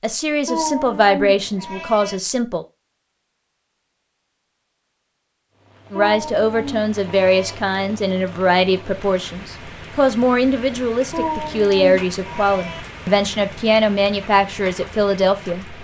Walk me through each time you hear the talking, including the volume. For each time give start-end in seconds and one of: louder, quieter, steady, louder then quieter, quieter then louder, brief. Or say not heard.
0.0-2.6 brief
5.9-15.7 steady.